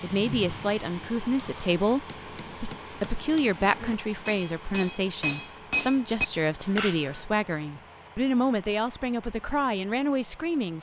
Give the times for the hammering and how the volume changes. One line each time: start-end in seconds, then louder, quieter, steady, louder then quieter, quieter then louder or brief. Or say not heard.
1.4-7.2 louder.